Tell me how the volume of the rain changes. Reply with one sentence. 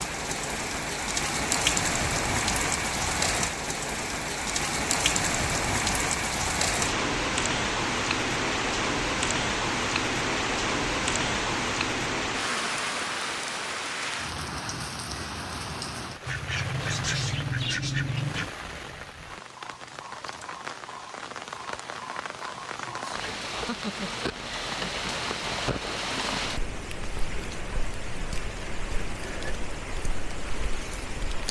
The volume of the rain goes down.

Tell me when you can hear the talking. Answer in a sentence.
The talking can't be heard in this clip.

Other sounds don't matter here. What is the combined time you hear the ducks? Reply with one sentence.
The ducks can be heard for 2 seconds in total.